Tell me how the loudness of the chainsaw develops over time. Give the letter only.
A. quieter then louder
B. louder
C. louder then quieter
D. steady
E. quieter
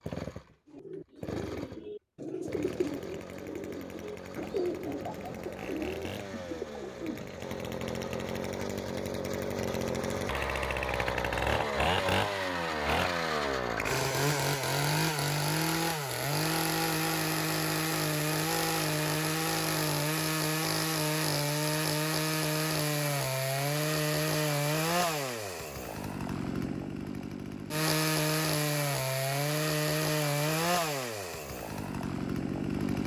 B.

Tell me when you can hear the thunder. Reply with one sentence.
You can't hear the thunder here.